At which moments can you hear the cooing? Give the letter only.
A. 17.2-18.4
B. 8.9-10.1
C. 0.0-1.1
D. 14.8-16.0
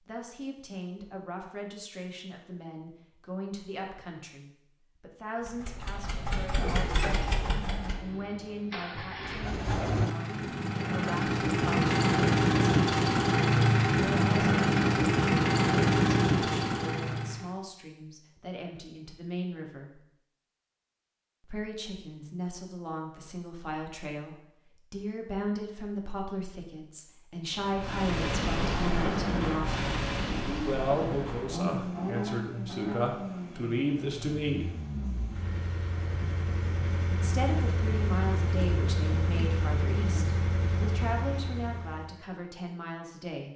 B.